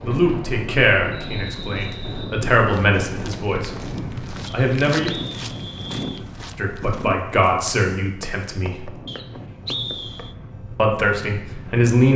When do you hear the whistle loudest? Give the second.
10 s.